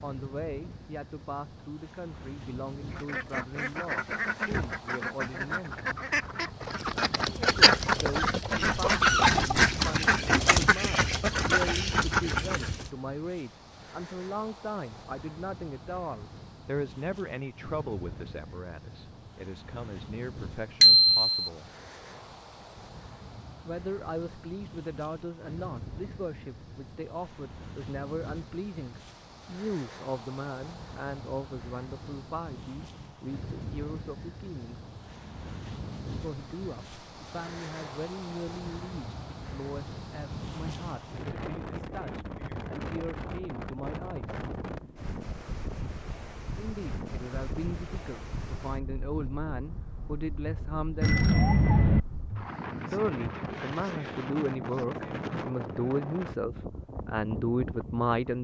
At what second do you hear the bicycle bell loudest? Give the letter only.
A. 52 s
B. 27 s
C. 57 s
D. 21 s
D.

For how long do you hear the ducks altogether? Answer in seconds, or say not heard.
10 s.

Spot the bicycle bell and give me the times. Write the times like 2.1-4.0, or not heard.
20.8-21.3, 51.0-52.0.